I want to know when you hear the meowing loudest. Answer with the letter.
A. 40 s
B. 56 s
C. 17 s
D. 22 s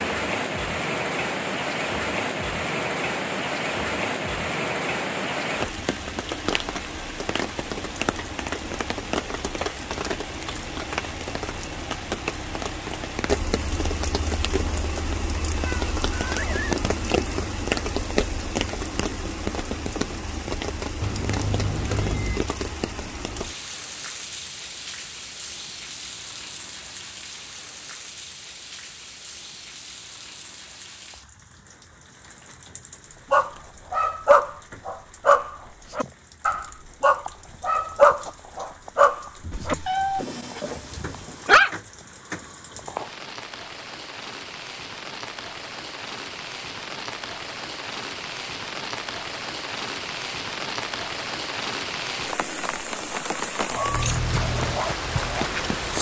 A.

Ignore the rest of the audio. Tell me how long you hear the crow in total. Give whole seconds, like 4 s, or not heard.
not heard.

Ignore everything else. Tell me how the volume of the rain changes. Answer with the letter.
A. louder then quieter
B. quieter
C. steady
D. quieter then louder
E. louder
D.